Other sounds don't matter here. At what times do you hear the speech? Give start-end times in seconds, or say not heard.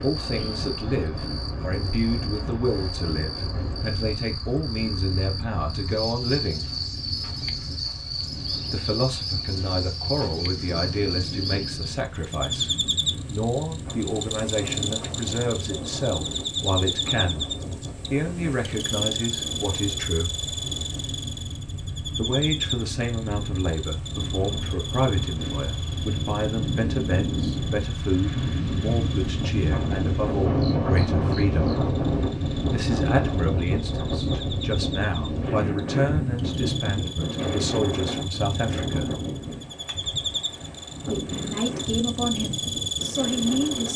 0.0-6.7, 8.7-20.4, 22.1-31.8, 32.7-39.1, 41.0-43.9.